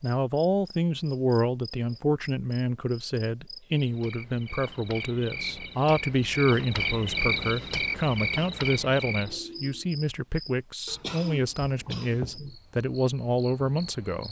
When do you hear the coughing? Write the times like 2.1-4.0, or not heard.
10.8-12.4.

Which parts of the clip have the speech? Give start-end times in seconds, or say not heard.
0.0-14.2.